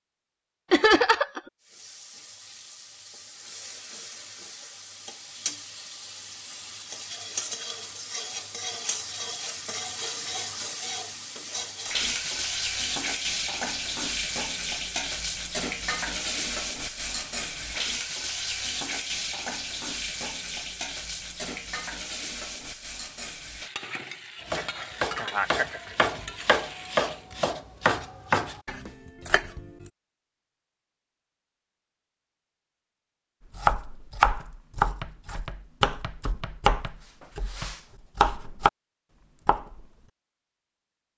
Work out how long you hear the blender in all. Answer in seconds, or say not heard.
not heard.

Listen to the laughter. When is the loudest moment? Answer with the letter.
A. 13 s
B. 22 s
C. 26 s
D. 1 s
D.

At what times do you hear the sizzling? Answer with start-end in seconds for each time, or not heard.
1.6-27.3.